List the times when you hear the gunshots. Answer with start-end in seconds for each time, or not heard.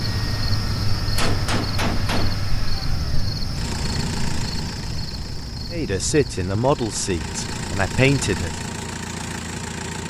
1.1-2.4.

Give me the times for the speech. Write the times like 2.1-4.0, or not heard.
5.7-8.6.